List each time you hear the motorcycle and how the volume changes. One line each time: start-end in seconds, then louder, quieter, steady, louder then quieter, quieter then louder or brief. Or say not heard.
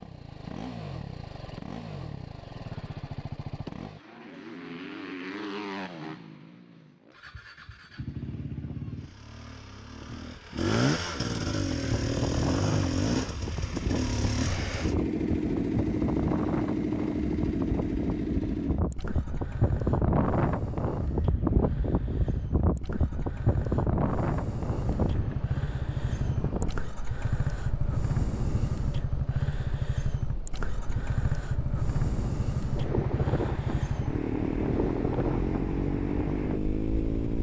0.0-37.3 louder.